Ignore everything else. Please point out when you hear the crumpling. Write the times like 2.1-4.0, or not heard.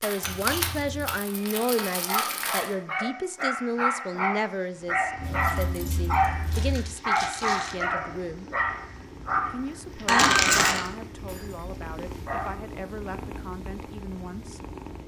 0.0-2.7, 6.5-7.8, 10.1-10.9.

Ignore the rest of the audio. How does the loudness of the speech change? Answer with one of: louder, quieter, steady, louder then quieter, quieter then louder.
quieter.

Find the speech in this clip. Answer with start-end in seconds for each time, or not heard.
0.0-8.5, 9.5-14.6.